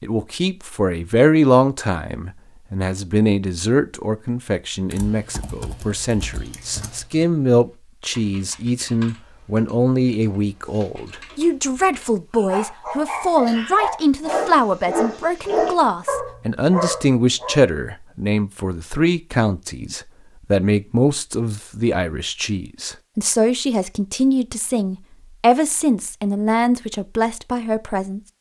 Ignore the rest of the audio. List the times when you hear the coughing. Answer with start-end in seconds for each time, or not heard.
not heard.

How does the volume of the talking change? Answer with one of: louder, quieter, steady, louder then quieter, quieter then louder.
steady.